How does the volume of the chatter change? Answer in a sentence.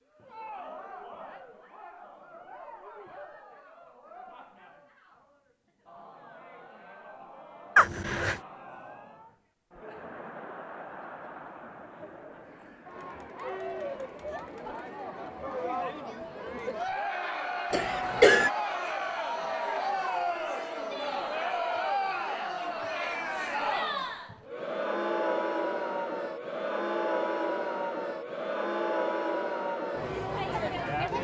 The volume of the chatter goes up.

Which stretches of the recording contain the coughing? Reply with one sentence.
You can hear the coughing from 7.8 to 8.4 s and from 17.7 to 18.5 s.